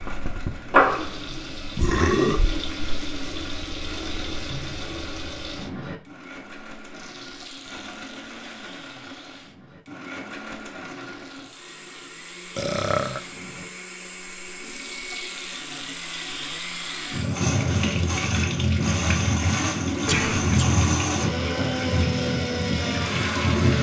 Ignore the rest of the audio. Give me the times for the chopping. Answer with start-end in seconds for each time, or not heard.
not heard.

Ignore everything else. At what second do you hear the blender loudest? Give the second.
21 s.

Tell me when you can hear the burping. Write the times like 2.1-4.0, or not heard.
1.8-2.6, 12.6-13.2, 20.1-20.6.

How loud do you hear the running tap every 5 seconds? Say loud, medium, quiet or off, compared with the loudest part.
loud, quiet, quiet, loud, loud.